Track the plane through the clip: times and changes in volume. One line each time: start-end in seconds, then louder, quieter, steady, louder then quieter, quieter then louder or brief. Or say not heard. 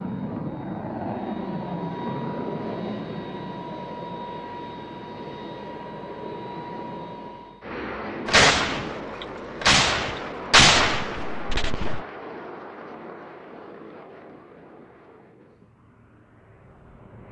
0.0-17.2 quieter.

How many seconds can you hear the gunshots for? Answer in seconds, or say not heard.
4 s.